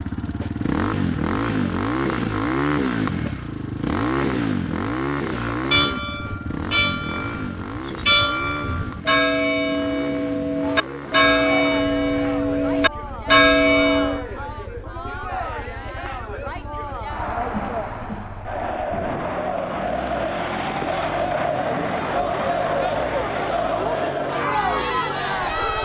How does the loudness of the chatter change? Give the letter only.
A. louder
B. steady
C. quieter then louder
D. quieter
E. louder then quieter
A.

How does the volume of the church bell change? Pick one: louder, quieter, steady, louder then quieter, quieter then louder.
louder.